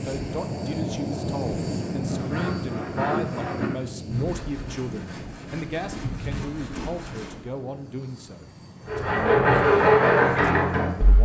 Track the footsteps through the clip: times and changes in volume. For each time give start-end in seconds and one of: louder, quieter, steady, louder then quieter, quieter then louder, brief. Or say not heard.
not heard.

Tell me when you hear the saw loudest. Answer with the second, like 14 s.
10 s.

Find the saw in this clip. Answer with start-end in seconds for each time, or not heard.
2.0-7.6, 8.8-11.2.